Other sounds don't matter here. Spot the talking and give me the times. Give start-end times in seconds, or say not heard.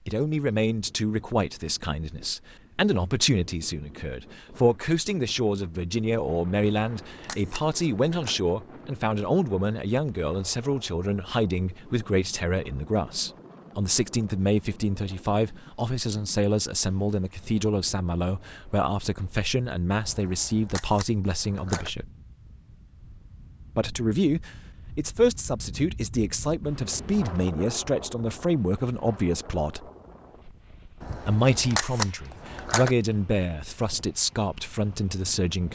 0.1-22.1, 23.8-29.9, 31.2-35.7.